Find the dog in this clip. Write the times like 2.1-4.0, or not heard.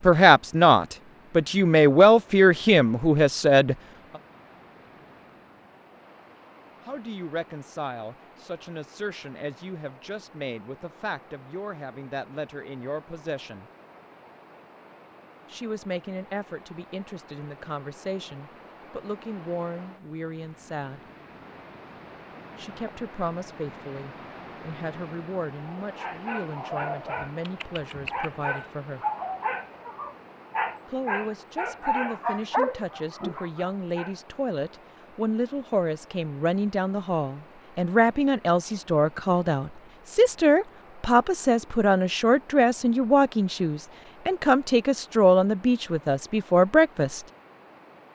25.8-34.1.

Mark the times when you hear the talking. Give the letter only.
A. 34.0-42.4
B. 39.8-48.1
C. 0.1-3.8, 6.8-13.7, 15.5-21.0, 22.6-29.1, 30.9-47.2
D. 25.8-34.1
C.